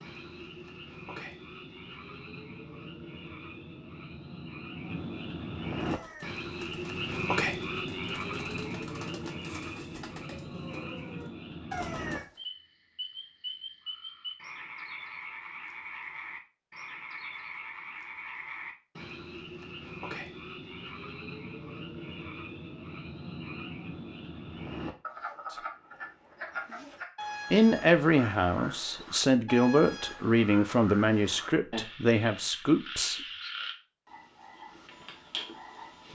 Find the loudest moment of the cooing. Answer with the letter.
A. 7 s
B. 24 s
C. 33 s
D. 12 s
D.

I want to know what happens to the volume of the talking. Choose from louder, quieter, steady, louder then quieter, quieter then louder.
steady.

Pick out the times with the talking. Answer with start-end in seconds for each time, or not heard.
27.5-33.2.